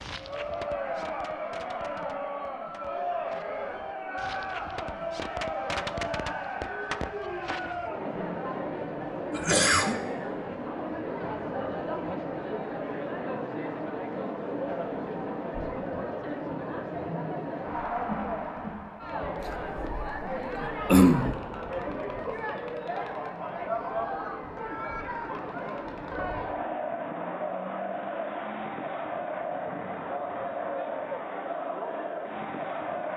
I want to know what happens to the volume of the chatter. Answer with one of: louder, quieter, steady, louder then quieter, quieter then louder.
steady.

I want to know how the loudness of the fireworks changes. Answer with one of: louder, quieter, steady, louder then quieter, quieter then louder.
quieter then louder.